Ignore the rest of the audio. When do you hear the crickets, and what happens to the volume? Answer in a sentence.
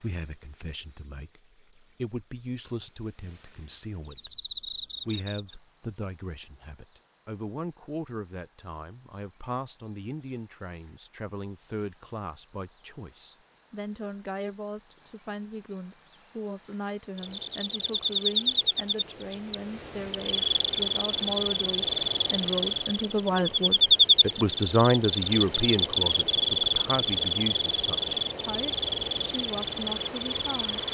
You can hear the crickets from 0.0 to 30.8 s, getting louder.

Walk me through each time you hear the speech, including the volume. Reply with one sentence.
The speech can be heard from 0.0 to 30.8 s, getting louder.